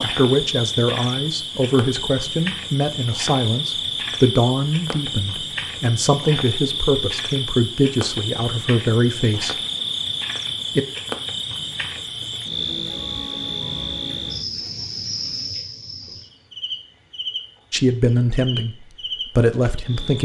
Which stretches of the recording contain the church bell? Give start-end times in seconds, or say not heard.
not heard.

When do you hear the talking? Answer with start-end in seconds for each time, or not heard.
0.0-9.6, 17.7-20.2.